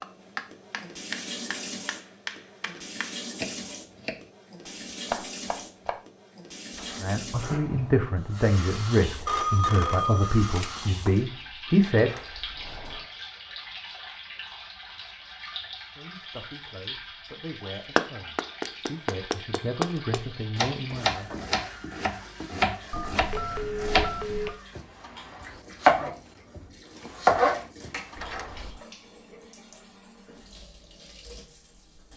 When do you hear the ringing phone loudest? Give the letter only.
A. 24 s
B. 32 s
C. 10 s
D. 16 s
C.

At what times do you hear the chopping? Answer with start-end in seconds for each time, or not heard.
0.0-6.0, 17.9-28.6.